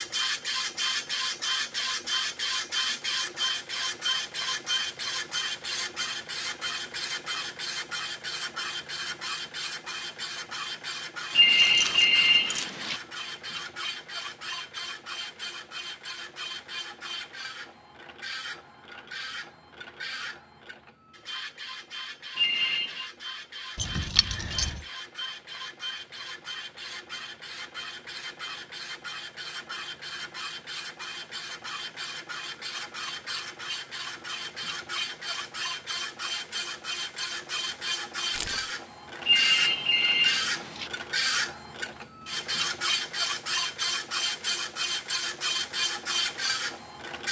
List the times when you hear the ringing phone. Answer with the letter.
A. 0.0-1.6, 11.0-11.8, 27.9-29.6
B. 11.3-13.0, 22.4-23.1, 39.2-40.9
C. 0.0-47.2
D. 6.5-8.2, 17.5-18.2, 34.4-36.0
B.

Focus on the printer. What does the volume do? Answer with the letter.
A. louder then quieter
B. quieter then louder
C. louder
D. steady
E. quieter
B.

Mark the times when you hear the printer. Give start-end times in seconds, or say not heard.
0.0-47.2.